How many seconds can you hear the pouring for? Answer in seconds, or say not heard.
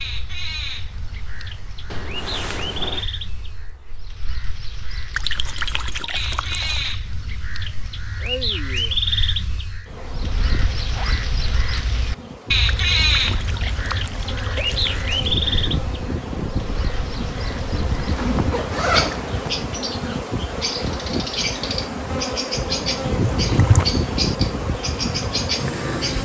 5 s.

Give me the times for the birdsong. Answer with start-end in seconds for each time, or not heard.
0.0-26.2.